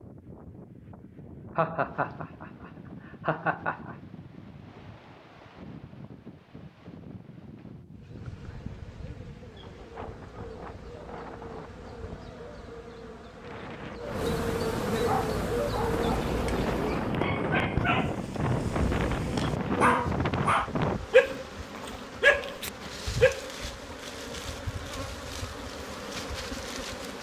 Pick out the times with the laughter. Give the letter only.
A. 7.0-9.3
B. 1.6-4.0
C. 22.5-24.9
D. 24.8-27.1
B.